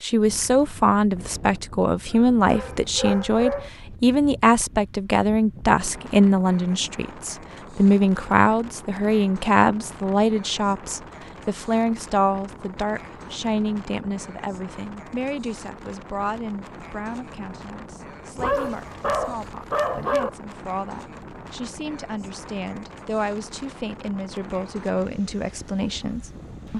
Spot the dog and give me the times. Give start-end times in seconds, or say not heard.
2.1-3.7, 18.4-20.3.